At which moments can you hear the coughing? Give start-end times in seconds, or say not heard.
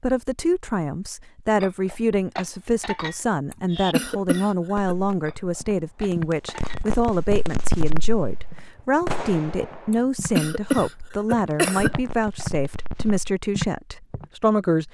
3.5-5.0, 9.9-11.9.